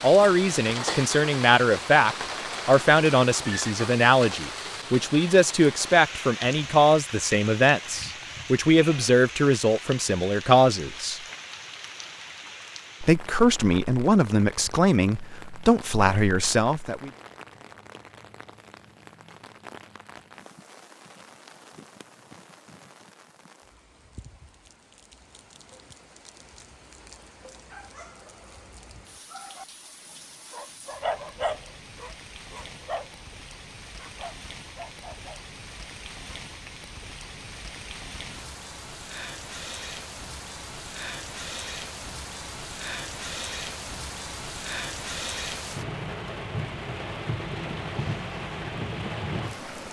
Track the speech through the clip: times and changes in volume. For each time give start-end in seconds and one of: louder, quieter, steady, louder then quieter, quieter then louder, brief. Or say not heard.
0.0-11.2 steady
13.0-17.1 steady.